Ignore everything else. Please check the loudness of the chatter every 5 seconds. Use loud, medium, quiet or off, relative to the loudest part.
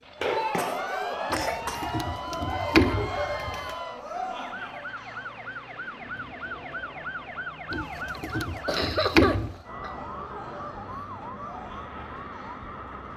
loud, quiet, quiet.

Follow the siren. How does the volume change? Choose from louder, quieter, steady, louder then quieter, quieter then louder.
steady.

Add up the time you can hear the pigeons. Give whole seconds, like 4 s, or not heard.
4 s.